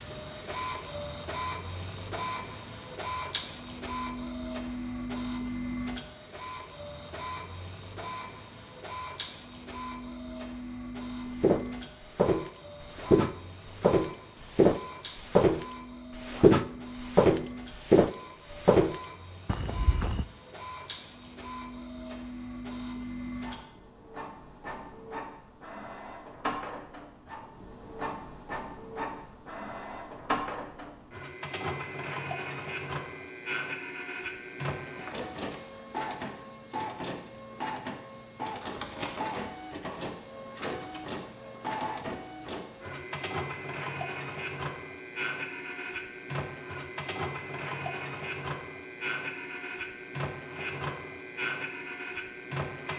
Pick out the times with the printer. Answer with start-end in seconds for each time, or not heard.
0.0-52.9.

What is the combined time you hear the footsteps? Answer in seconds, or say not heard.
9 s.